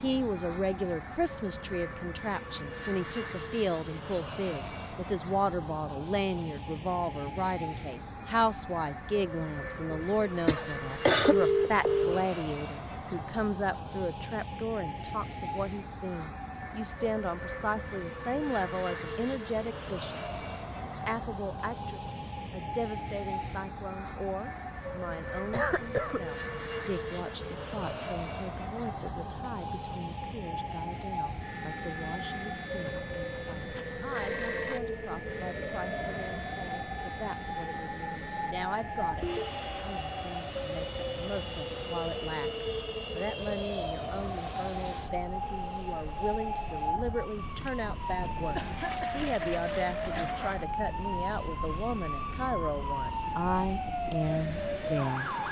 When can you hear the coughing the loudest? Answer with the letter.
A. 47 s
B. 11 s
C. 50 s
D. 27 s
B.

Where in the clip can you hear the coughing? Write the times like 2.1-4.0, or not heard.
10.4-11.3, 25.5-26.2, 48.5-50.5.